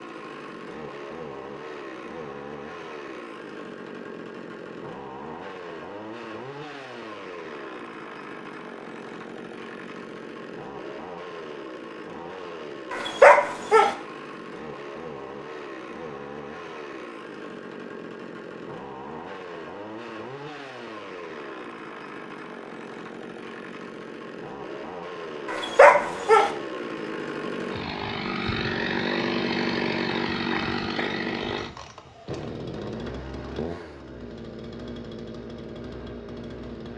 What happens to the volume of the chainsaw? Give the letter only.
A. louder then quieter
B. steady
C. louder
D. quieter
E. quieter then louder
C.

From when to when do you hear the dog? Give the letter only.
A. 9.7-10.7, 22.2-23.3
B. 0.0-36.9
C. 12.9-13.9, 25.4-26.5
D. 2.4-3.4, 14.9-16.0
C.